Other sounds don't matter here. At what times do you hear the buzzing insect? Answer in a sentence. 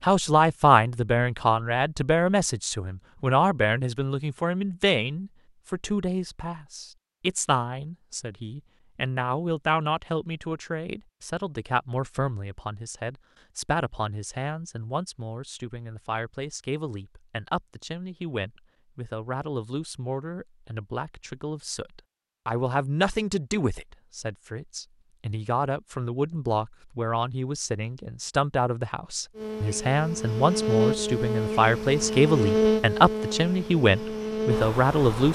You can hear the buzzing insect from 29.4 to 35.3 s.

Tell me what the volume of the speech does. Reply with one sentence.
The loudness of the speech goes down, then up.